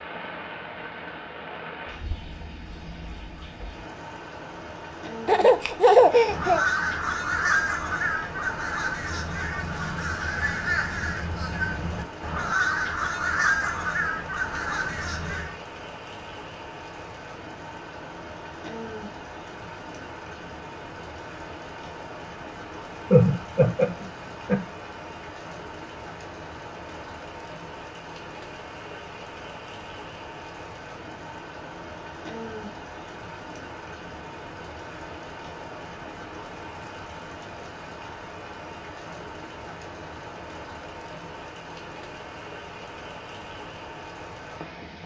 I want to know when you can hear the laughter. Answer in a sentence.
The laughter can be heard from 5.2 to 6.7 s and from 23.1 to 24.6 s.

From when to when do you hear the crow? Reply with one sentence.
The crow can be heard from 6.1 to 15.6 s.